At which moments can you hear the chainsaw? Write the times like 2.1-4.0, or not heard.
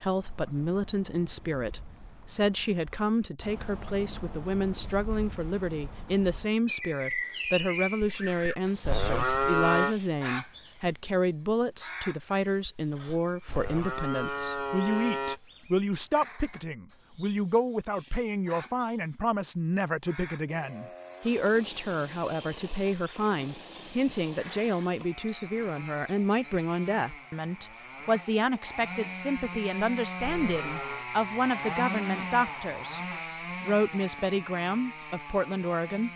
20.4-36.1.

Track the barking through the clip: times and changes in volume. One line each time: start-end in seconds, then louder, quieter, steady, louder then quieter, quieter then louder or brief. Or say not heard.
not heard.